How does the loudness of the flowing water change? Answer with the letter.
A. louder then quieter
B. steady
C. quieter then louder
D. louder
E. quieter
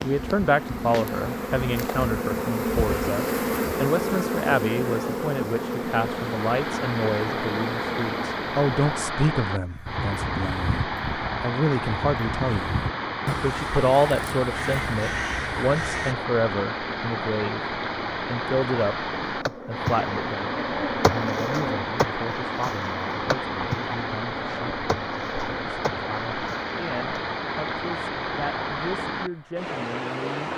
B.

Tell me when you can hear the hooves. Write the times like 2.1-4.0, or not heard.
not heard.